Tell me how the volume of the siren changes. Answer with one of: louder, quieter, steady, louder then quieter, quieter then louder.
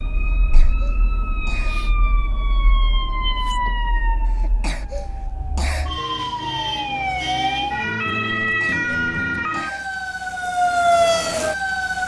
louder.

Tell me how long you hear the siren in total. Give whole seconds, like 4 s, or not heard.
12 s.